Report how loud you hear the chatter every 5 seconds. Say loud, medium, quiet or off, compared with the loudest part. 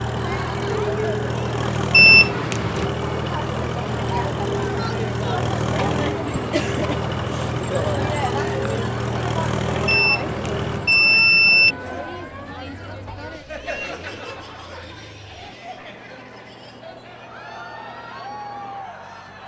loud, loud, medium, medium.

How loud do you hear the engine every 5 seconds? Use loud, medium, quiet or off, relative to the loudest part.
loud, loud, medium, quiet.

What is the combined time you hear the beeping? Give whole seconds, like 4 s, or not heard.
3 s.